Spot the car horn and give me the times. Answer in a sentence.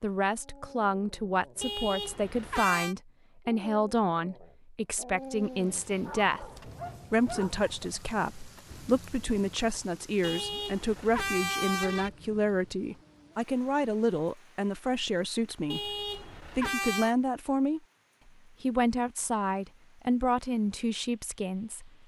You can hear the car horn from 1.6 to 3.0 s, from 10.2 to 12.1 s and from 15.7 to 17.1 s.